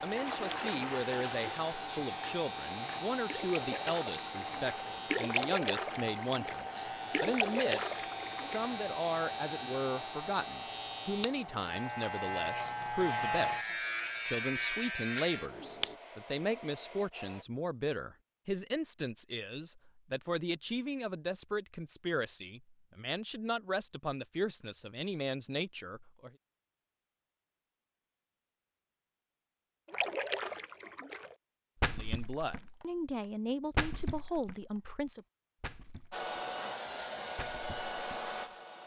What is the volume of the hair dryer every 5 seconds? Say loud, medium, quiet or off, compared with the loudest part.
loud, loud, medium, medium, off, off, off, loud.